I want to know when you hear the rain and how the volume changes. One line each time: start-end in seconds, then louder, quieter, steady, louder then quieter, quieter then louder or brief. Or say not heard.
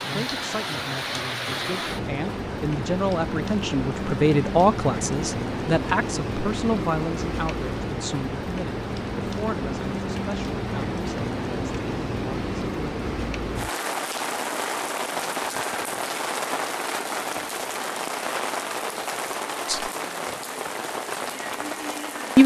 0.0-22.4 steady.